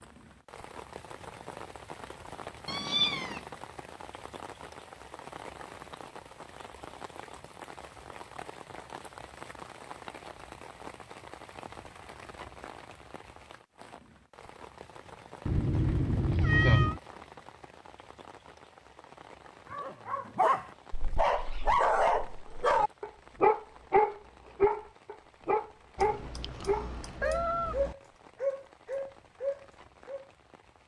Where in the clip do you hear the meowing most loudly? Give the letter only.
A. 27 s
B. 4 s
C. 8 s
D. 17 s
D.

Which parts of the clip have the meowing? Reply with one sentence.
You can hear the meowing from 2.6 to 3.5 s, from 15.4 to 17.0 s and from 25.9 to 27.9 s.